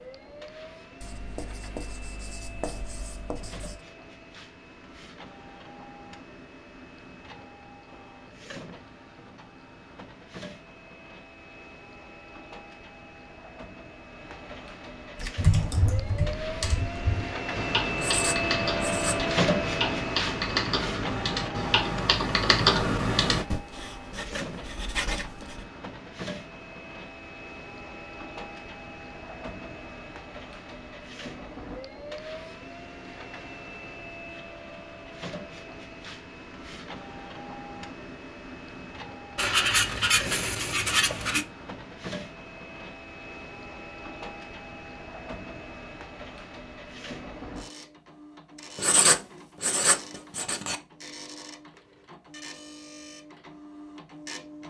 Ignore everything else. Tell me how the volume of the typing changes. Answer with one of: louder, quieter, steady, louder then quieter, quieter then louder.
louder.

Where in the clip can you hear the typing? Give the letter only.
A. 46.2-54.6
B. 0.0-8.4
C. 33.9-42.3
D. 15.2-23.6
D.